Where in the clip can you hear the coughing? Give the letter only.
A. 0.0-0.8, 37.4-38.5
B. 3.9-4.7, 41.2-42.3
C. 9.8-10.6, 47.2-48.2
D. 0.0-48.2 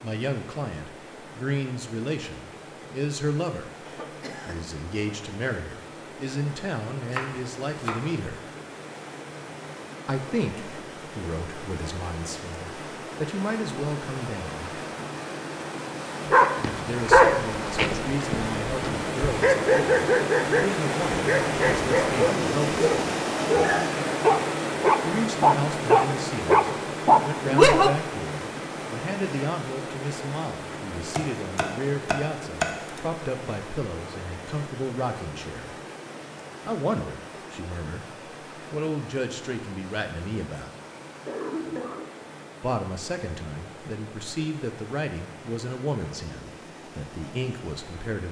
B.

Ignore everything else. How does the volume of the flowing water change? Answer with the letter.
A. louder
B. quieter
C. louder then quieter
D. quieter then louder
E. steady
C.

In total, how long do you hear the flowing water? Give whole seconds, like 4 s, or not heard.
48 s.